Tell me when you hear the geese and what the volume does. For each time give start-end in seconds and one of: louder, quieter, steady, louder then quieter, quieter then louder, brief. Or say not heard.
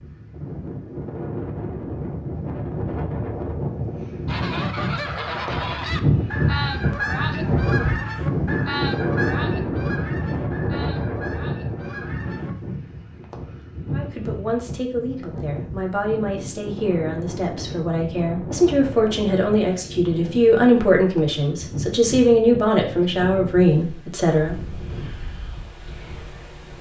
4.2-12.5 quieter.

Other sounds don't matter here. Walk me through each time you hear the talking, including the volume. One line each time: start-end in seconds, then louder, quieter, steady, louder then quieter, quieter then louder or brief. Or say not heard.
13.9-24.6 louder.